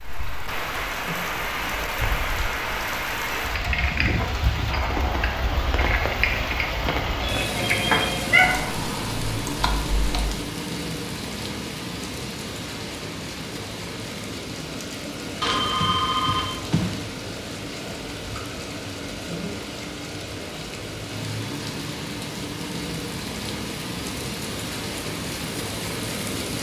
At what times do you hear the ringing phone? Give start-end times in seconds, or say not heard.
7.2-8.6, 15.4-16.9.